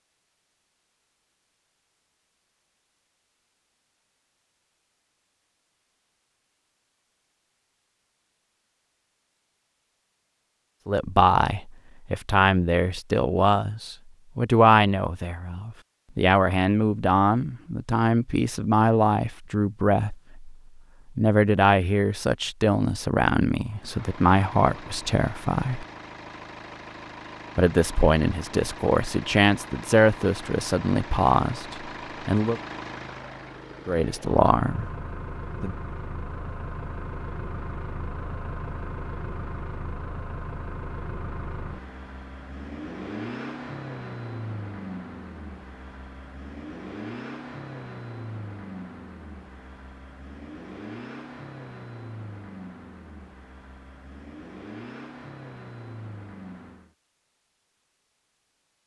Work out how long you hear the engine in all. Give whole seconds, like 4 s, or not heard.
33 s.